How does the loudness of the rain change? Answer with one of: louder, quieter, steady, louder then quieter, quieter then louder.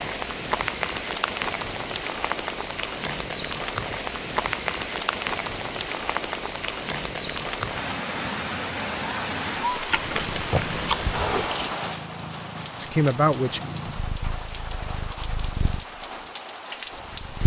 quieter.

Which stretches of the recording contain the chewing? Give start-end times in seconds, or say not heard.
9.9-11.8.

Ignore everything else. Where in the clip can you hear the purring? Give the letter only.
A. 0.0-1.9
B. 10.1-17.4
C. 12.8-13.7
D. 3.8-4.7
B.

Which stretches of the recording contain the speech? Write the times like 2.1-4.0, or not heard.
12.8-13.7.